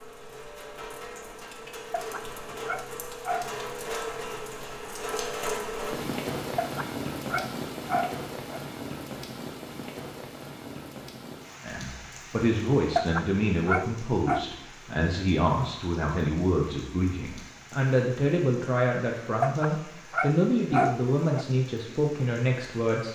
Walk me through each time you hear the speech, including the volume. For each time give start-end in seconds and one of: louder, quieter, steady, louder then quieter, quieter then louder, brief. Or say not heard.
11.6-23.1 steady.